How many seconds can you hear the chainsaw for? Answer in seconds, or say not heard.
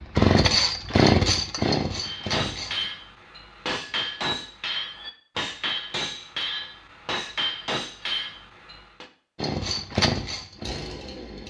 5 s.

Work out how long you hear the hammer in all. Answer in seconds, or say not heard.
7 s.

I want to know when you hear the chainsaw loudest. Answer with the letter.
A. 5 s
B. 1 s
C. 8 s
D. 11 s
B.